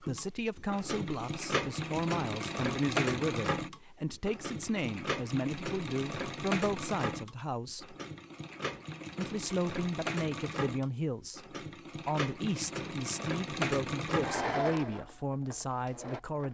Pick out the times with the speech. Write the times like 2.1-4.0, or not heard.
0.0-8.0, 9.2-16.4.